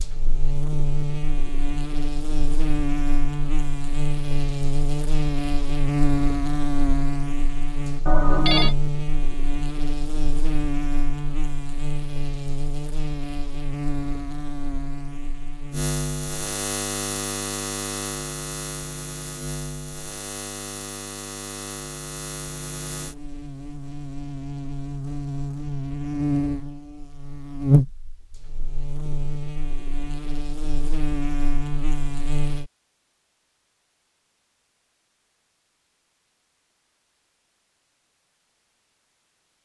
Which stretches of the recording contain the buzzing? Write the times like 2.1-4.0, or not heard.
0.0-32.7.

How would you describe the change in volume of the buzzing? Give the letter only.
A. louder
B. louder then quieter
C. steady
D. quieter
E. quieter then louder
E.